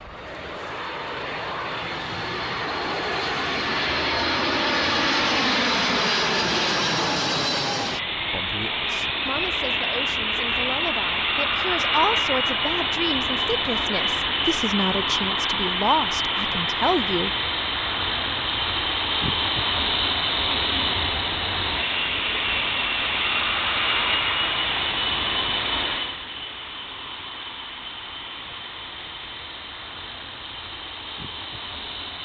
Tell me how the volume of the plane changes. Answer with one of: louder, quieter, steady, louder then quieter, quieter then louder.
quieter.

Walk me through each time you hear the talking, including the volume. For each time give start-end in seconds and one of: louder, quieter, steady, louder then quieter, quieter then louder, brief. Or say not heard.
8.3-17.3 louder.